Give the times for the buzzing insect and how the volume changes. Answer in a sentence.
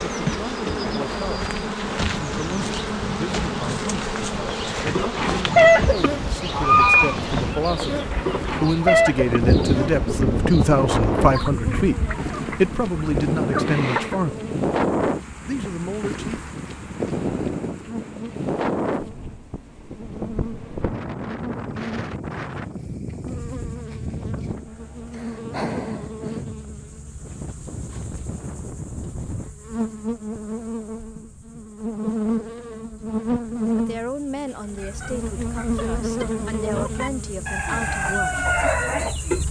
You can hear the buzzing insect from 0.0 to 39.4 s, getting quieter then louder.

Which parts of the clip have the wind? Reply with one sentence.
The wind can be heard from 0.0 to 29.6 s.